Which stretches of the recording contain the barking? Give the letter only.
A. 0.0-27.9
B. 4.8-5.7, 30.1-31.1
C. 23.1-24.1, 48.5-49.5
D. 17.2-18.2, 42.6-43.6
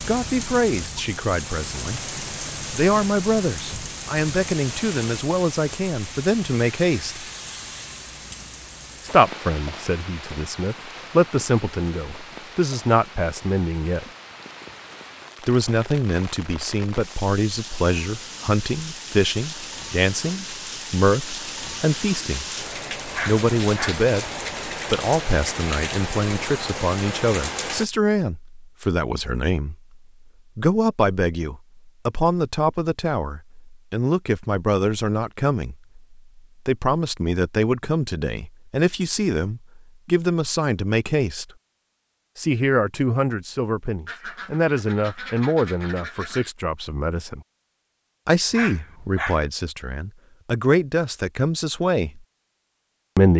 C.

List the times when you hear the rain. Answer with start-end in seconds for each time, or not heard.
0.0-27.9.